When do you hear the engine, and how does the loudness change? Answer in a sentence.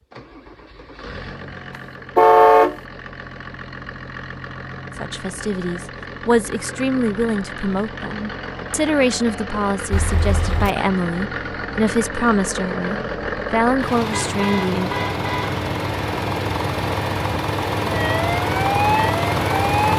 You can hear the engine from 0.0 to 19.9 s, getting louder.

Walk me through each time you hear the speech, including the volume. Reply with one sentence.
The speech can be heard from 5.0 to 14.9 s, at a steady volume.